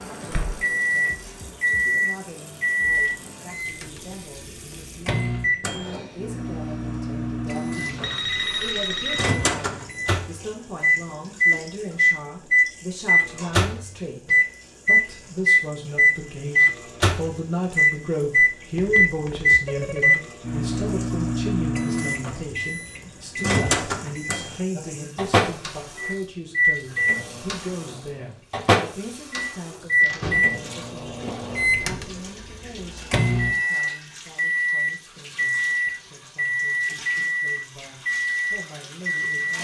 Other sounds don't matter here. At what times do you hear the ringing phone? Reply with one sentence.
The ringing phone can be heard from 8.0 to 9.2 s, from 18.8 to 20.1 s and from 32.9 to 34.1 s.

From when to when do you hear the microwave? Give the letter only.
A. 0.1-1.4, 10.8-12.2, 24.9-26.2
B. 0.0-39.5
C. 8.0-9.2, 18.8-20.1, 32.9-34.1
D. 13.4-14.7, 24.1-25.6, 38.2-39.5
B.